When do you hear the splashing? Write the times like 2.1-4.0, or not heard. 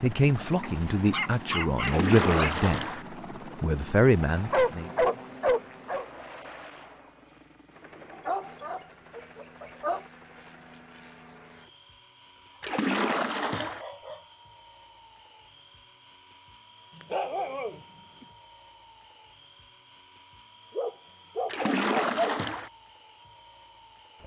1.8-3.0, 12.6-13.8, 21.4-22.7.